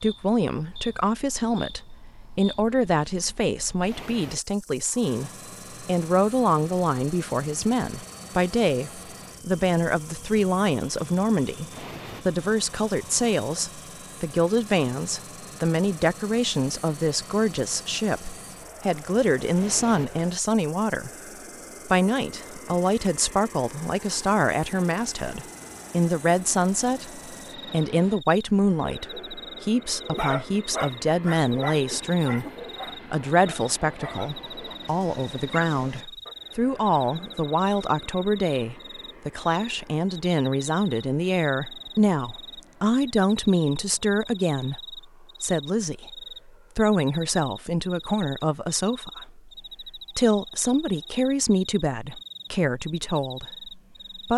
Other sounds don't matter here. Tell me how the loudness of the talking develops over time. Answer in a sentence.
The loudness of the talking stays about the same.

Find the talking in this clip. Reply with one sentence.
You can hear the talking from 0.0 to 21.1 s, from 21.9 to 32.5 s and from 33.1 to 54.3 s.